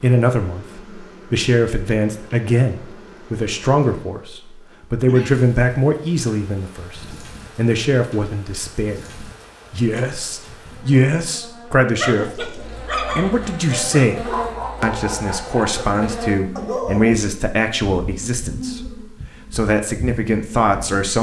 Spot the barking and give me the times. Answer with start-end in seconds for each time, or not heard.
12.0-17.1.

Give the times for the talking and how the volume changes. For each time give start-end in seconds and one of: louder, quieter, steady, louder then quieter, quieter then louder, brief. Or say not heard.
0.0-21.1 steady.